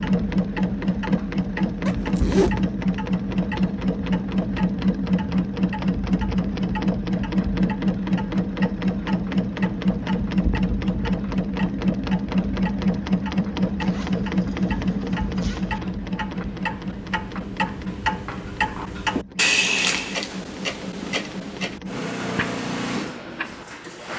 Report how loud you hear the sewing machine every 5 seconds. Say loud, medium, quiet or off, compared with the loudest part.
loud, loud, loud, medium, medium.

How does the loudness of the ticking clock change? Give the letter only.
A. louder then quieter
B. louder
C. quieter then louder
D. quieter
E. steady
B.